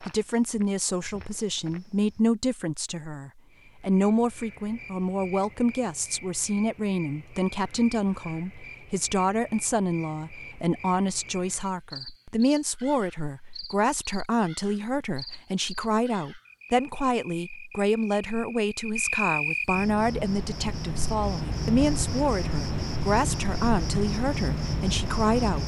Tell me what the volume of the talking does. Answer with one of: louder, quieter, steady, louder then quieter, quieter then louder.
steady.